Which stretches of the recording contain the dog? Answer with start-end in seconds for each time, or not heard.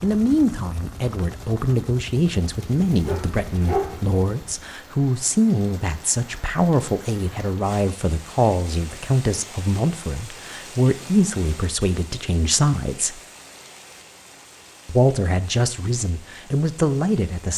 2.6-4.0.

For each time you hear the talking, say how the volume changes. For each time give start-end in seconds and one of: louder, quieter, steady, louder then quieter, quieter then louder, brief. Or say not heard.
0.0-13.2 steady
14.8-17.5 brief.